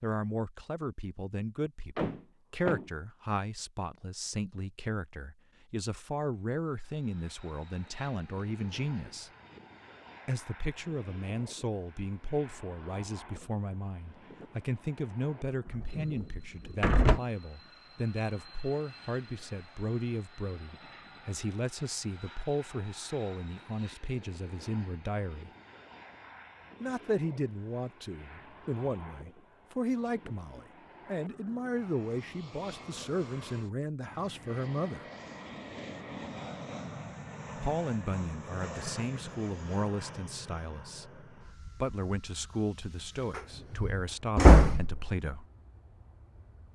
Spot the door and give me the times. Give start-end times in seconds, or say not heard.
1.9-2.9, 15.8-17.2, 43.4-45.1.